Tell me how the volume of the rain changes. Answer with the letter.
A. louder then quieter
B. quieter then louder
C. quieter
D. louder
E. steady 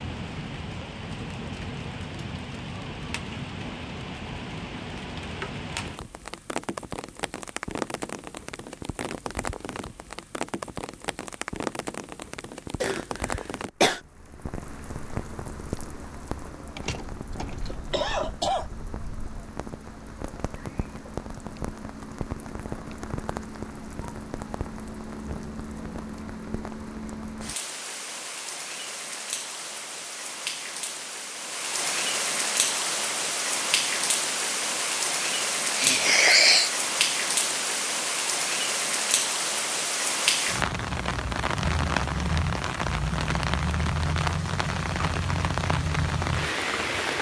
D.